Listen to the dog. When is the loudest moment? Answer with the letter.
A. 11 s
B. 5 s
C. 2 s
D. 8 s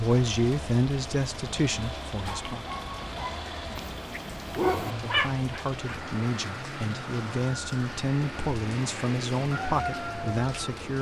B.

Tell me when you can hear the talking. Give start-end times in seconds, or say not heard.
0.0-2.6, 4.8-10.9.